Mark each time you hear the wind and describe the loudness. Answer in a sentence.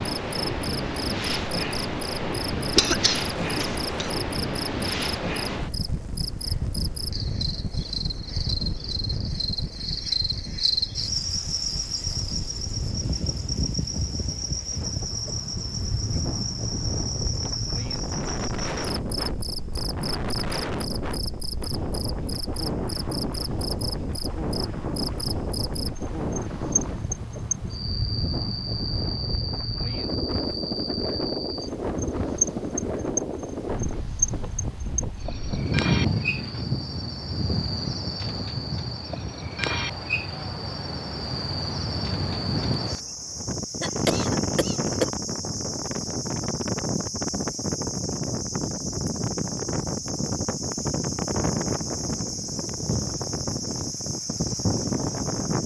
You can hear the wind from 0.0 to 55.6 s, at a steady volume.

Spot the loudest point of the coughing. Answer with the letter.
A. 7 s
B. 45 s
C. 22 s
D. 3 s
D.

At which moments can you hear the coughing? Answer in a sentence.
You can hear the coughing from 2.8 to 4.1 s and from 43.8 to 45.1 s.